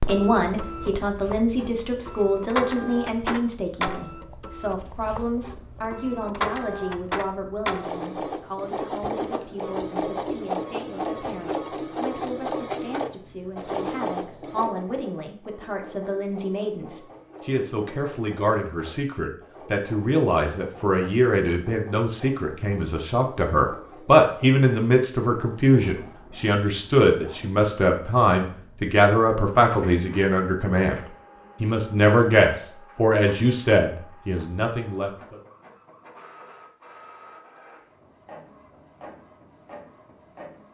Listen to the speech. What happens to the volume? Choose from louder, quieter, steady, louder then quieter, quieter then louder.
quieter then louder.